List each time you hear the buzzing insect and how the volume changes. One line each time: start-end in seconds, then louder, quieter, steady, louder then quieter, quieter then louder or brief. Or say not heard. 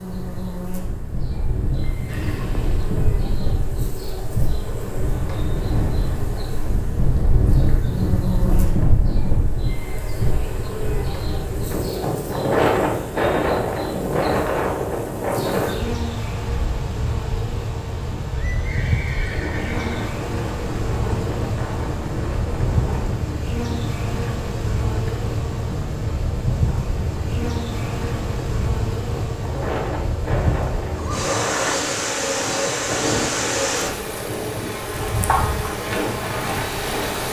0.0-37.2 louder.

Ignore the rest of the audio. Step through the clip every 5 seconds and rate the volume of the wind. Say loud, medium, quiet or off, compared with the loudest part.
medium, loud, loud, medium, medium, medium, medium, medium.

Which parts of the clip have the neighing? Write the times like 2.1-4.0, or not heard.
2.0-2.9, 18.1-20.1, 30.9-31.9.